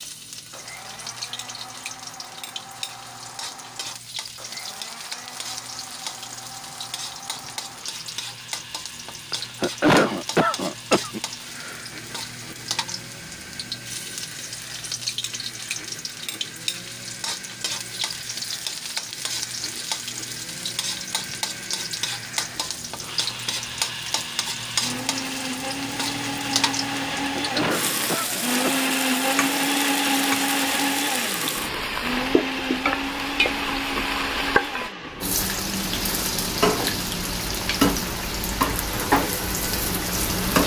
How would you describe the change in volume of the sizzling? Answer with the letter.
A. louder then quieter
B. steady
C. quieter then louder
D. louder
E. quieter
D.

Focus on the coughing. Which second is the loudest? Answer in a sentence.
The loudest moment of the coughing is at 10 seconds.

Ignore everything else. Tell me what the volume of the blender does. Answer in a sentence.
The volume of the blender goes up.